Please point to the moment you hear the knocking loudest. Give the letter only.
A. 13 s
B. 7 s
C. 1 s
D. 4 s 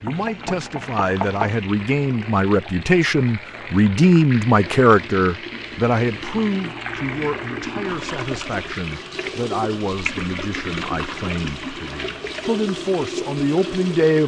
C.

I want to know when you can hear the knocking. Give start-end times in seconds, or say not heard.
0.1-1.6.